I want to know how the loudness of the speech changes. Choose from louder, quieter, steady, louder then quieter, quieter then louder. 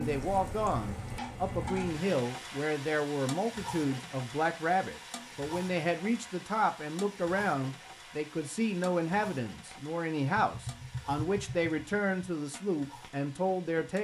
steady.